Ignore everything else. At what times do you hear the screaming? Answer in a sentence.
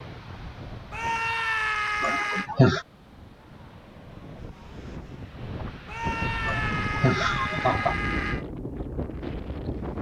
The screaming can be heard from 0.9 to 2.5 s and from 5.8 to 8.4 s.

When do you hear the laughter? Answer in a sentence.
The laughter can be heard from 2.0 to 2.9 s and from 6.5 to 8.0 s.